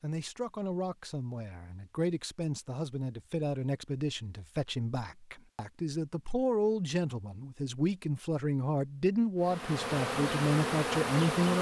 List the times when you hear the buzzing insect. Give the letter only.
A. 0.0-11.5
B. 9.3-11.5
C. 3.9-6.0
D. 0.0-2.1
B.